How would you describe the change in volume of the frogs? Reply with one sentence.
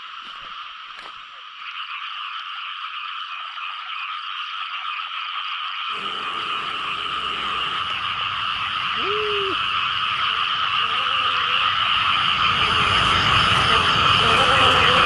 The volume of the frogs goes up.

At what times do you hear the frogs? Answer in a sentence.
You can hear the frogs from 0.0 to 15.0 s.